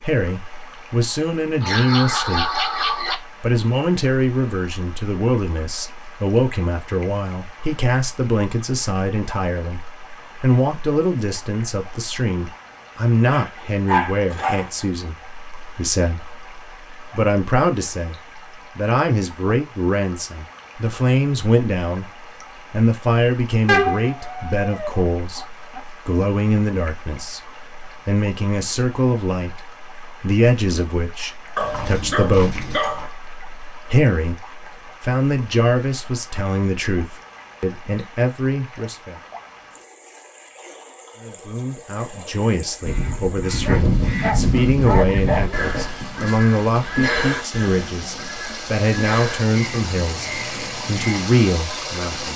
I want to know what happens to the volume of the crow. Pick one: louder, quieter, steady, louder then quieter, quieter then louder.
quieter.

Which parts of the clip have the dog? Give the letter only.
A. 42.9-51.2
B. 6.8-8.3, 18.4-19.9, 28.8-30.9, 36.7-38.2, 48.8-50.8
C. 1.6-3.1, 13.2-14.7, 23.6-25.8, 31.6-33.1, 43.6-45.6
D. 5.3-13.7
C.